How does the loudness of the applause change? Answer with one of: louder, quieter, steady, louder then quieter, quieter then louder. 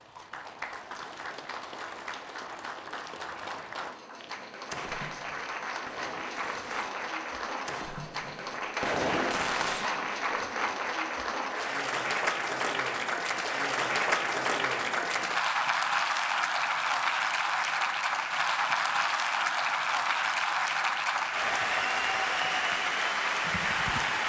louder.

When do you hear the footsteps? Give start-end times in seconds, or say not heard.
not heard.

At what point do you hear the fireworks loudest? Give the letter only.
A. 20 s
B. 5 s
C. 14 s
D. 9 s
D.